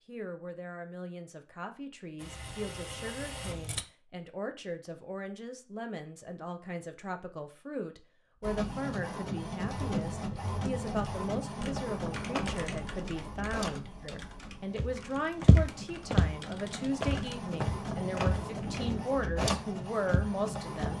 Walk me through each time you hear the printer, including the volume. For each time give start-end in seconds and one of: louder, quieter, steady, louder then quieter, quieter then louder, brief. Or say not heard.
2.1-3.9 brief
8.4-20.9 quieter then louder.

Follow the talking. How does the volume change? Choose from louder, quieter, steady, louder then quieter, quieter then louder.
louder.